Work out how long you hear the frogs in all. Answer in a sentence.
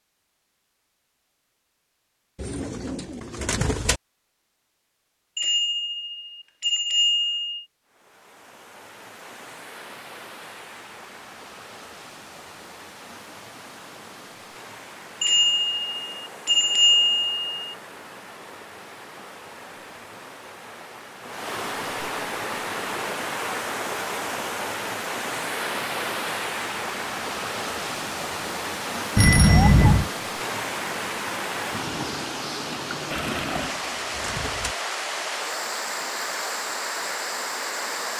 The frogs can't be heard in this clip.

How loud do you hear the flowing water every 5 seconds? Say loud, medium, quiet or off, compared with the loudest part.
off, quiet, quiet, quiet, loud, loud, loud, loud.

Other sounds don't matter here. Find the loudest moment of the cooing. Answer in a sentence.
The volume of the cooing peaks at 4 seconds.